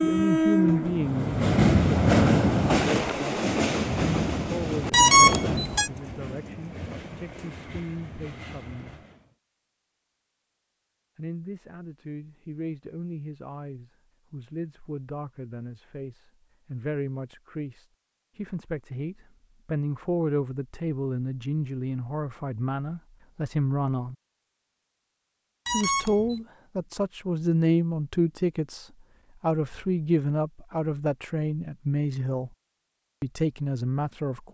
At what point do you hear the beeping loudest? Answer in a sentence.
The volume of the beeping peaks at 5 seconds.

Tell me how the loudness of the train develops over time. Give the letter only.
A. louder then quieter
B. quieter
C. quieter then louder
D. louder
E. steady
B.